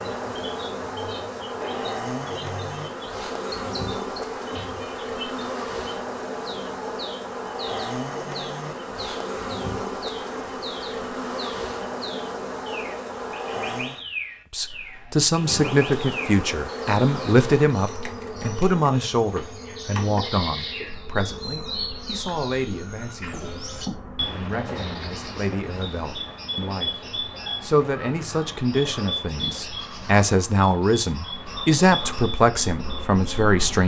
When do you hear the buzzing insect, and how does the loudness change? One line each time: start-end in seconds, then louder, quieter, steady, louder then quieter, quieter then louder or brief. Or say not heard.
0.0-14.1 steady
15.3-24.4 quieter
31.2-33.8 brief.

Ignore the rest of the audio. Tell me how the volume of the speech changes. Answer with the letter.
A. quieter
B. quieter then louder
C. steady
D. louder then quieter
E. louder
B.